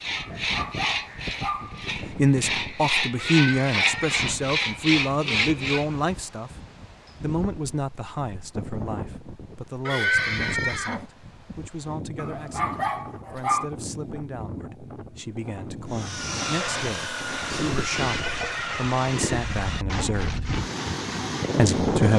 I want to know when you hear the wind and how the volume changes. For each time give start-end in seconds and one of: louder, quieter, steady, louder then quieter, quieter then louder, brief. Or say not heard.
0.0-22.1 louder.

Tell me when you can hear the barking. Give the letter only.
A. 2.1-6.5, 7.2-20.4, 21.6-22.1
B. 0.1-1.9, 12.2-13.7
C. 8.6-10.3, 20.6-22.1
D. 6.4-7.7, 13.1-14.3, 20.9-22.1
B.